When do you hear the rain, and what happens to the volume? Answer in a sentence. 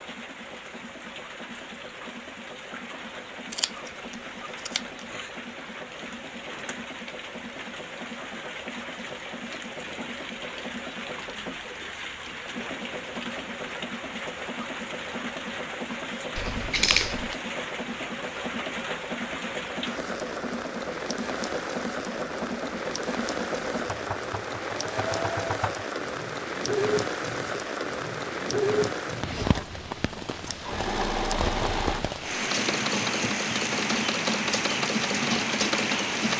You can hear the rain from 0.0 to 36.3 s, getting louder.